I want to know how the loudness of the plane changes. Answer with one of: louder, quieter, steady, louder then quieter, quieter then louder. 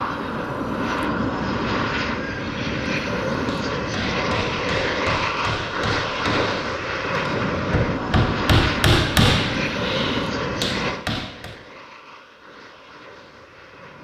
quieter.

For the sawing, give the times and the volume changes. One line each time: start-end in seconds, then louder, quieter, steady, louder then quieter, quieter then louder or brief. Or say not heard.
not heard.